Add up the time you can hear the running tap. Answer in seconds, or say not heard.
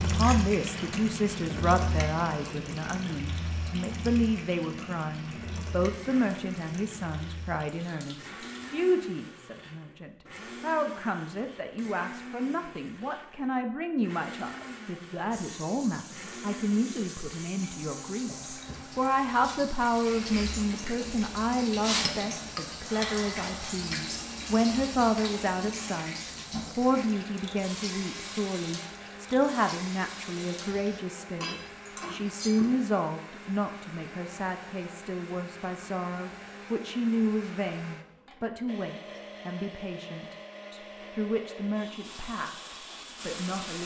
26 s.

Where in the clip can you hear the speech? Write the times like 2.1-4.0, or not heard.
0.0-43.8.